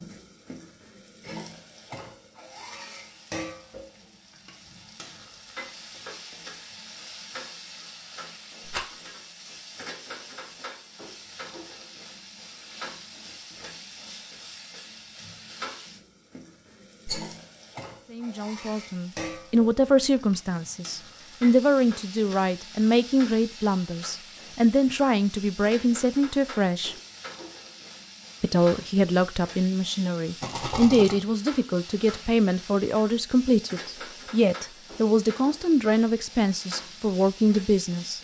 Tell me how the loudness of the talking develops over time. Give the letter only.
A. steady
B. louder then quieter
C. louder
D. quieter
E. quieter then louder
A.